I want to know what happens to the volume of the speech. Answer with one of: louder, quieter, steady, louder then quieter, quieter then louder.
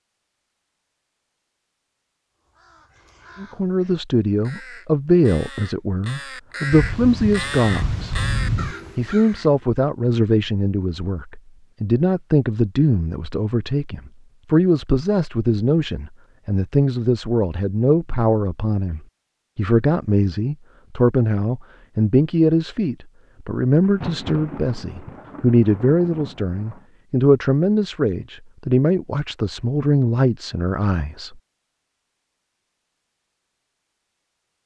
steady.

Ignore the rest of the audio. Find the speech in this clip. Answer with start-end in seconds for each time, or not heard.
3.4-8.2, 8.9-31.4.